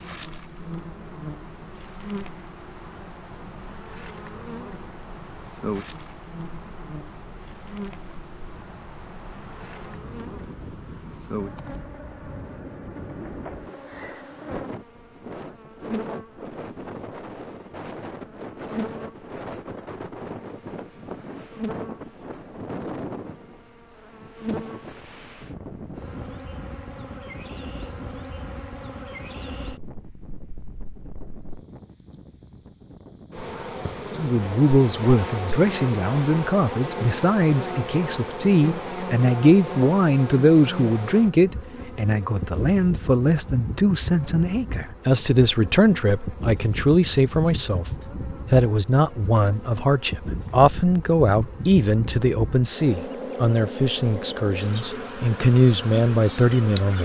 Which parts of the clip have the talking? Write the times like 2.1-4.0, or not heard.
34.1-56.9.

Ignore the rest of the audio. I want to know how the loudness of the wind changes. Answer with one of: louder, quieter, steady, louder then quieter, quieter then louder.
louder then quieter.